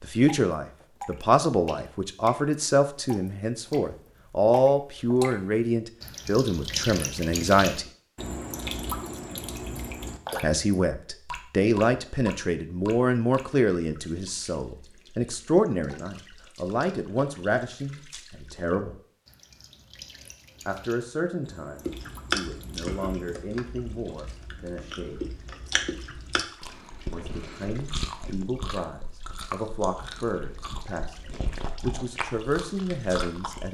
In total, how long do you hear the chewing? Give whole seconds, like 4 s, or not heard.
12 s.